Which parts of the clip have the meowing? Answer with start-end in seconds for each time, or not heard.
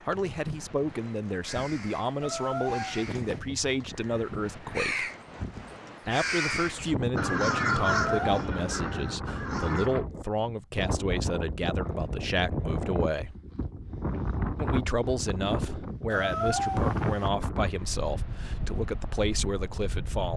2.2-3.4, 7.8-8.4, 16.1-17.3.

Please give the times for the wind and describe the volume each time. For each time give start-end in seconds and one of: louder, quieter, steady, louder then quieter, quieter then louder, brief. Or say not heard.
0.0-20.3 louder.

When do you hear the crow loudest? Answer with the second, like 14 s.
8 s.